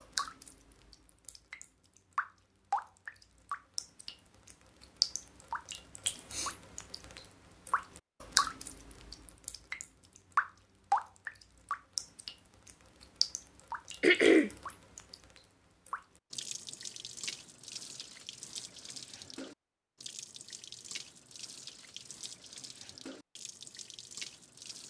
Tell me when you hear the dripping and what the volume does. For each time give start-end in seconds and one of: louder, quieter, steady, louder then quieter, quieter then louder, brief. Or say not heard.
0.0-24.8 quieter.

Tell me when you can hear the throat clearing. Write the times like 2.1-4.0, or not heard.
6.0-6.5, 14.0-14.5.